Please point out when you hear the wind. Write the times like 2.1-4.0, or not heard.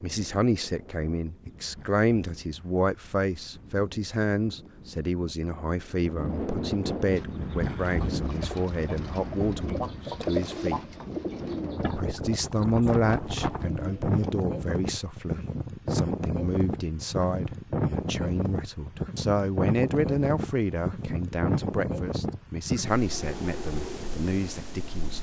0.0-25.1.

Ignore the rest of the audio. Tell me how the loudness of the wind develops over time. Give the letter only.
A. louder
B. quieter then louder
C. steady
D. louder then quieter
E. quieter
A.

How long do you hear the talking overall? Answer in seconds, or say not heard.
24 s.